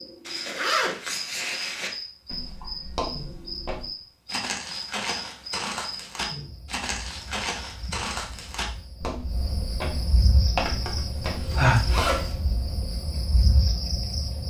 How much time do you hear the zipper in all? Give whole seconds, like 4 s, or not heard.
3 s.